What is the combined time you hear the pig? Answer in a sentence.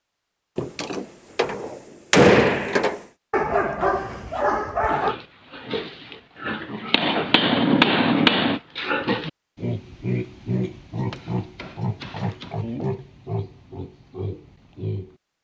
The pig can be heard for 10 seconds in total.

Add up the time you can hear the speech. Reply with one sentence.
The speech can't be heard in this clip.